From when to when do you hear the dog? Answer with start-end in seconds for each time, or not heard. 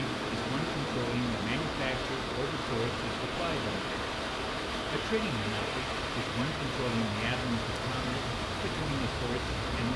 not heard.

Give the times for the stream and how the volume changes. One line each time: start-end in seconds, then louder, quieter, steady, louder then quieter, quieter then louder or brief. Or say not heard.
0.0-9.9 steady.